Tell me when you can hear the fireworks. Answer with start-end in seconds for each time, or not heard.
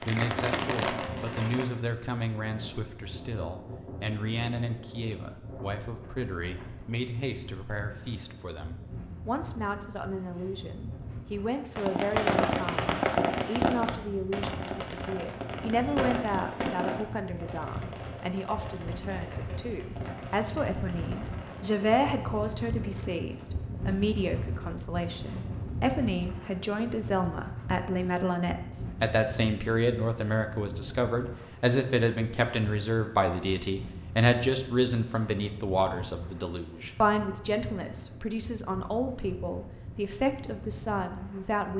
0.0-1.6, 11.8-21.9.